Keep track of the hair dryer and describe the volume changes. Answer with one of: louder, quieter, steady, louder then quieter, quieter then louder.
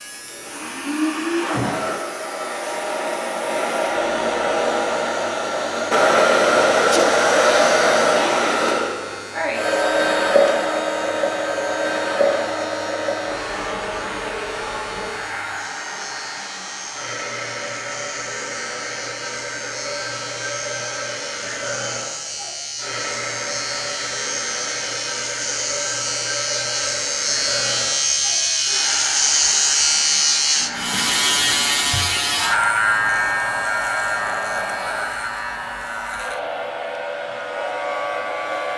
quieter.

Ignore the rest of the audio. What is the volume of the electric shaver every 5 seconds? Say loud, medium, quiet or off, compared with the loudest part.
quiet, quiet, quiet, quiet, medium, loud, loud, medium.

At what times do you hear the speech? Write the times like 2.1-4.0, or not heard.
not heard.